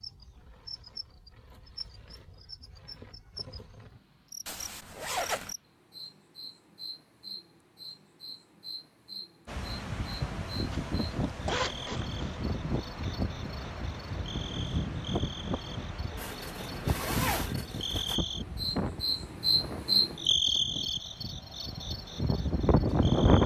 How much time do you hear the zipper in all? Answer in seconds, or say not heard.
5 s.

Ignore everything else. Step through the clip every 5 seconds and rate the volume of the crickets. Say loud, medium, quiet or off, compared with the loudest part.
quiet, quiet, quiet, loud, loud.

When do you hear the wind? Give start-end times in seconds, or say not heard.
9.4-23.4.